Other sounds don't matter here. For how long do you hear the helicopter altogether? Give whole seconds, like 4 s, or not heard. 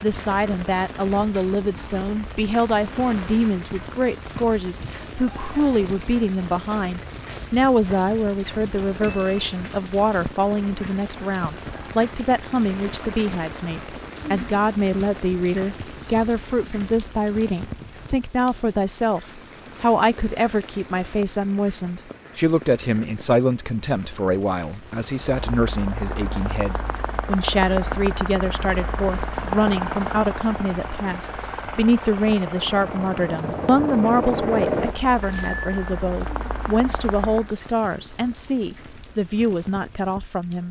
12 s.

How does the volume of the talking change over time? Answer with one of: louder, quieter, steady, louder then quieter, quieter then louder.
steady.